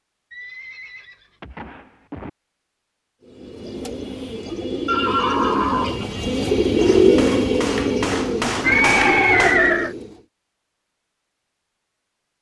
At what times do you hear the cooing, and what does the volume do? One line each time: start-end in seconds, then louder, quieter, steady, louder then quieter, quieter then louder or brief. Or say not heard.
3.2-10.2 louder then quieter.